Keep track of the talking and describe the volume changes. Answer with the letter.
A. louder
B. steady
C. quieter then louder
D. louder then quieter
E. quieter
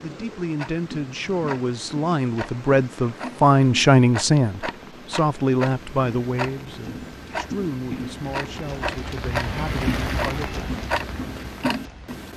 D.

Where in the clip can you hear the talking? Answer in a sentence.
The talking can be heard from 0.0 to 10.7 s.